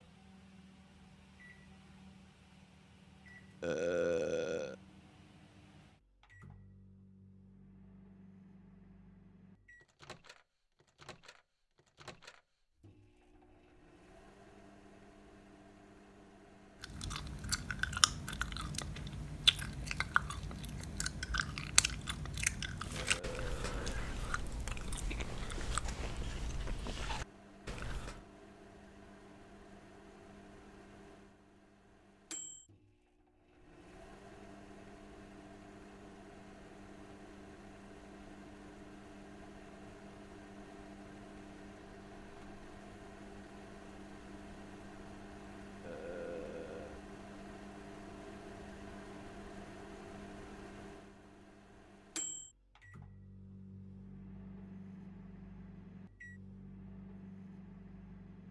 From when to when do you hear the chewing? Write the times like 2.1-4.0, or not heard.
16.8-28.2.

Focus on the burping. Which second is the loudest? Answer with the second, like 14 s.
4 s.